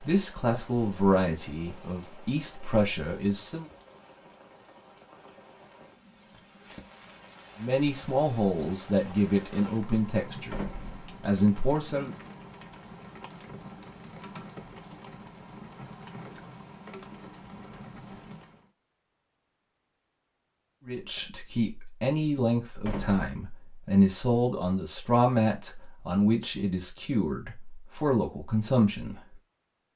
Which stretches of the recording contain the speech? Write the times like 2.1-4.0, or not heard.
0.0-3.7, 7.6-12.1, 20.9-29.2.